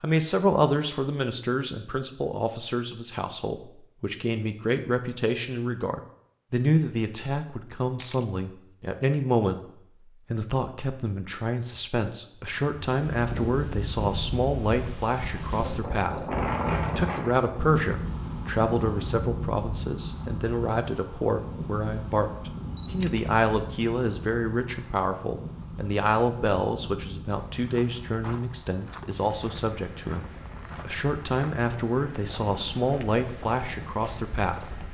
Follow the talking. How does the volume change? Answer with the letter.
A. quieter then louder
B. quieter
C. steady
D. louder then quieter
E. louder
C.